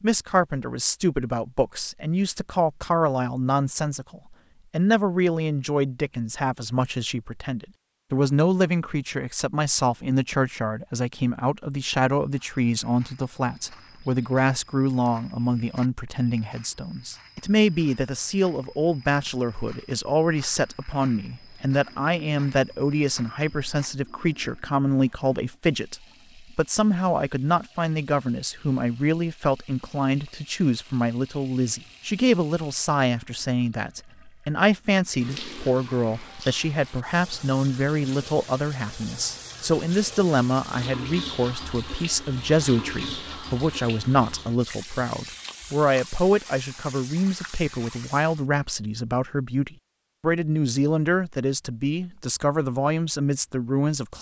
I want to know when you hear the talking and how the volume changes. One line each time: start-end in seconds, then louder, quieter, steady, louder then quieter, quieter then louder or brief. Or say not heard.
0.0-54.1 steady.